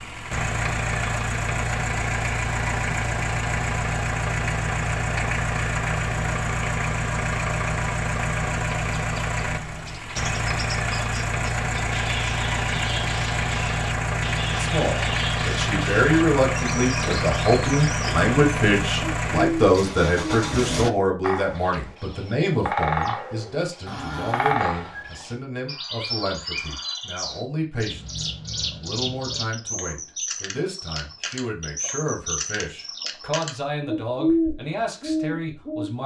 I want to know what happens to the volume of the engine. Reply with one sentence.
The loudness of the engine stays about the same.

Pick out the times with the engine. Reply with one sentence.
The engine can be heard from 0.0 to 20.9 s.